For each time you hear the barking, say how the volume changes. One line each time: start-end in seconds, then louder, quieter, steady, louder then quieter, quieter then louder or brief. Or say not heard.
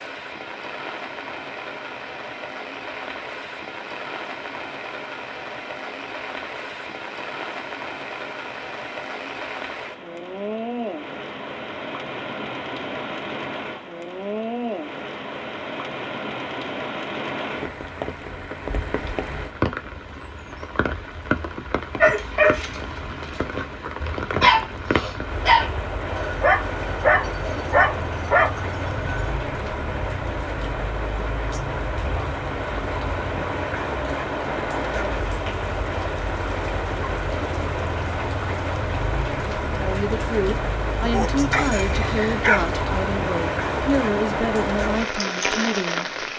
22.0-29.4 steady
41.1-42.7 brief.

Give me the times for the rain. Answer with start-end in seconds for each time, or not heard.
0.0-46.3.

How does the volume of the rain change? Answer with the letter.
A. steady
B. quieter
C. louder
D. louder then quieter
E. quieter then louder
C.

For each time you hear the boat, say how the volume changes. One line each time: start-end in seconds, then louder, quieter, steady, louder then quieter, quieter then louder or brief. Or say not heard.
not heard.